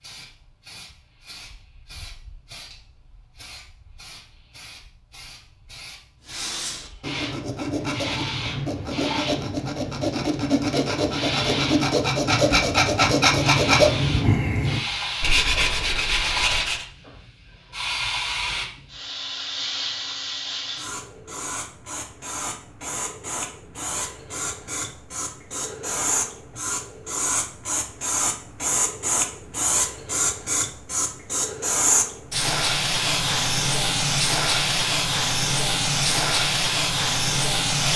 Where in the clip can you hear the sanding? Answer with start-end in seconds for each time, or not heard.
6.2-16.9.